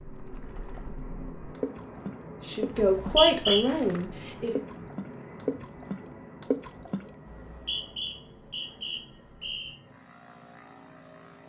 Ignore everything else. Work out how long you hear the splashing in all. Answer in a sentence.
You can hear the splashing for 7 seconds altogether.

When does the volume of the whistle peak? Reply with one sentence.
The volume of the whistle peaks at 3 seconds.